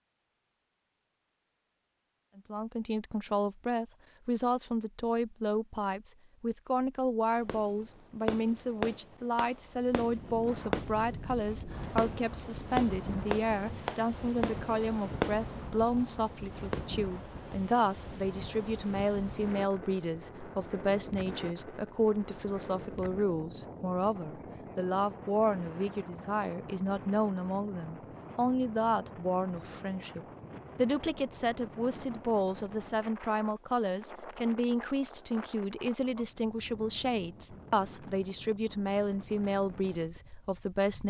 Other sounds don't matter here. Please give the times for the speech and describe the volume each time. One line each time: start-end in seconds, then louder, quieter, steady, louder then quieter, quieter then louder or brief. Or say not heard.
2.4-41.0 steady.